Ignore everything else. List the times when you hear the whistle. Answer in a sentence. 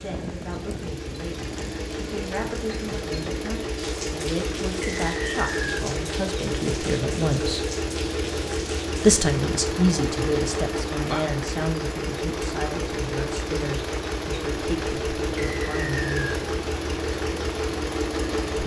You can hear the whistle from 5.0 to 5.8 s and from 15.3 to 16.4 s.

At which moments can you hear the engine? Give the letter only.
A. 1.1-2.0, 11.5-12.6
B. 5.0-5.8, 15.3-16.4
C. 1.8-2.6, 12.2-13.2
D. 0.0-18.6
D.